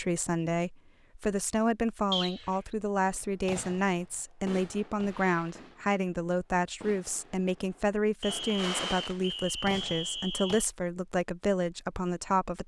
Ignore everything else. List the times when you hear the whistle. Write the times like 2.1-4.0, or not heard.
2.1-2.5, 8.2-10.7.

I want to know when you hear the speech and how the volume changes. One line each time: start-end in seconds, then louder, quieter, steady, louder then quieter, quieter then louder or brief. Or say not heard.
0.0-12.6 steady.